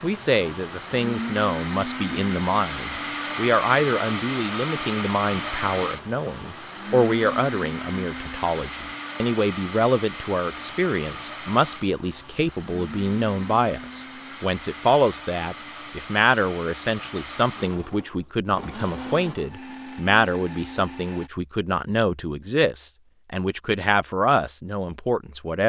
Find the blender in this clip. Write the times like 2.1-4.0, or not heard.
0.0-21.3.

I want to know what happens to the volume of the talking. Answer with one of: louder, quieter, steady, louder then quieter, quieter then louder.
steady.